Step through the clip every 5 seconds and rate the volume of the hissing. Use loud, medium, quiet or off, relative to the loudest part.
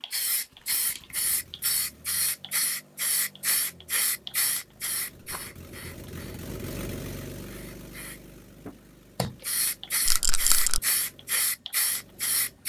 loud, medium, loud.